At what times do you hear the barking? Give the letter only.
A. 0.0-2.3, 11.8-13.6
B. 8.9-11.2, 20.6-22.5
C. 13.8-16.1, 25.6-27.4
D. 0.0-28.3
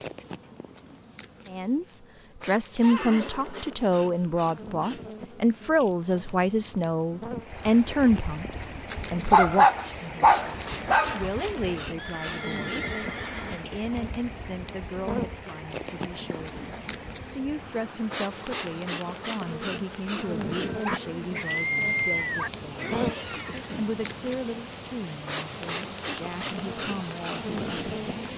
B.